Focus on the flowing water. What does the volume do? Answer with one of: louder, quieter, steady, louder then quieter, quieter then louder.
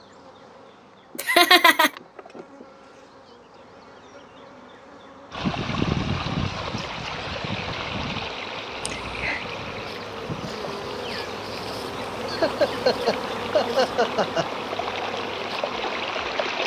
quieter then louder.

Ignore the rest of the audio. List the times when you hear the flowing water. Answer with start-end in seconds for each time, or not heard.
5.3-16.6.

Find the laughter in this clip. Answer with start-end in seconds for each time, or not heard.
1.1-1.9, 8.8-9.4, 12.2-14.4.